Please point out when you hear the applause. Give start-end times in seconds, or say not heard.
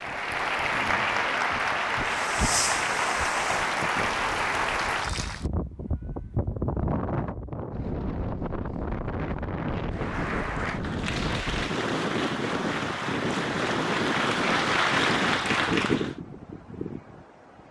0.0-5.5, 9.9-16.1.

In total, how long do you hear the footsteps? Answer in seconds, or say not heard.
2 s.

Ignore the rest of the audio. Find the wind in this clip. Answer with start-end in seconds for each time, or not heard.
5.0-17.6.